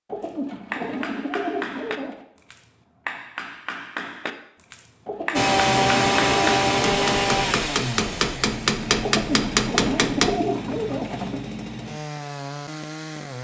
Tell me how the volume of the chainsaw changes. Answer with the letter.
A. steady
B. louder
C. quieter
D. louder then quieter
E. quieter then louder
C.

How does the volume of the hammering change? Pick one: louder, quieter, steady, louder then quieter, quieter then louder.
louder.